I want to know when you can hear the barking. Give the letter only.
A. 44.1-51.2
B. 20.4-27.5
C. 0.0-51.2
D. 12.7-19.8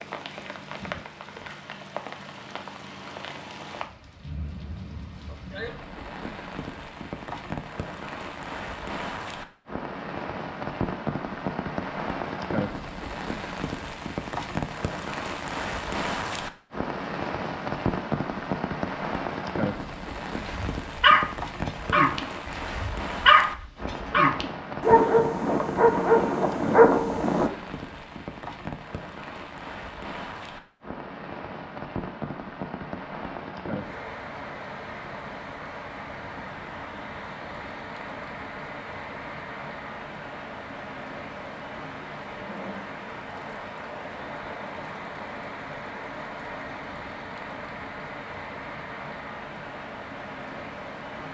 B.